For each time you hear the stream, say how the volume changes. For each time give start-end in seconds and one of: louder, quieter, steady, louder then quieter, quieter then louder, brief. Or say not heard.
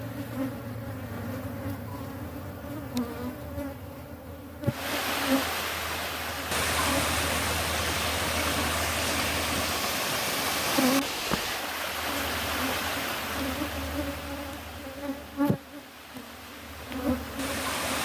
4.7-18.0 quieter.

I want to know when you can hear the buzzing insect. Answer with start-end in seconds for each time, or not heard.
0.0-18.0.